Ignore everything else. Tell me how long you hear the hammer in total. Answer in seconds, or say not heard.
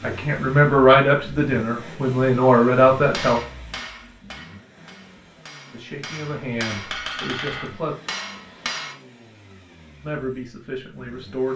6 s.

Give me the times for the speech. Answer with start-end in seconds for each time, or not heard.
0.0-3.4, 5.7-8.0, 10.0-11.5.